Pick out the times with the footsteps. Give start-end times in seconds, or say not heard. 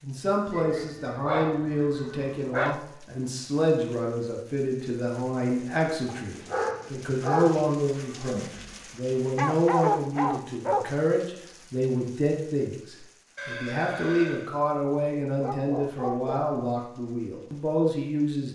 not heard.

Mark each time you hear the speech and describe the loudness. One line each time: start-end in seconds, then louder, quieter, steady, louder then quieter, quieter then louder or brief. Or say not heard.
0.0-18.5 steady.